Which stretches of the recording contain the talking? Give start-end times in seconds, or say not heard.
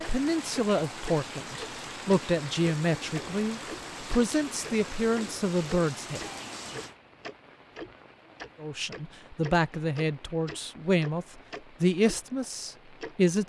0.1-6.2, 8.6-13.4.